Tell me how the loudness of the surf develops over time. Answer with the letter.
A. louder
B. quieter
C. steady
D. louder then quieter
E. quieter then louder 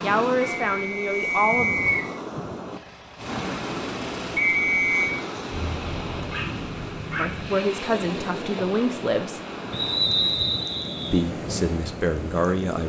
C.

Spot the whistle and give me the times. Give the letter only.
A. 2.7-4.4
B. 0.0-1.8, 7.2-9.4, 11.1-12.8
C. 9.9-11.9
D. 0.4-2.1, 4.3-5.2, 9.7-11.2
D.